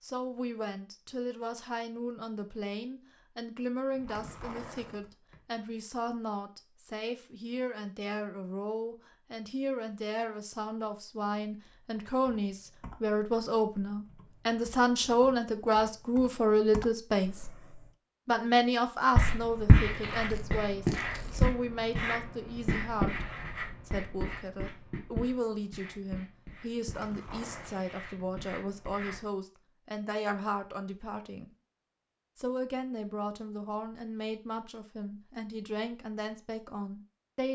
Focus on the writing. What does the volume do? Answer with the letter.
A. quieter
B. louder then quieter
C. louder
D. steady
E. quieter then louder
A.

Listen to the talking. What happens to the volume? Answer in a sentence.
The loudness of the talking goes up, then down.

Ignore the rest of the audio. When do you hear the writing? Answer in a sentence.
You can hear the writing from 19.1 to 29.2 s.